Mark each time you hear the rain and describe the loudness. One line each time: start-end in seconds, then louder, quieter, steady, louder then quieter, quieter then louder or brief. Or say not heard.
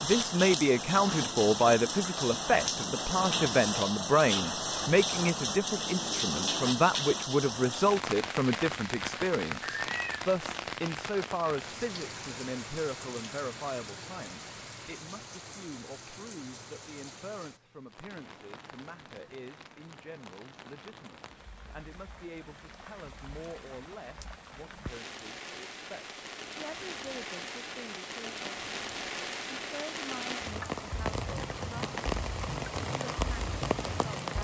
0.0-34.3 quieter then louder.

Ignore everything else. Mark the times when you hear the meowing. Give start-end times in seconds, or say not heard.
9.6-10.2.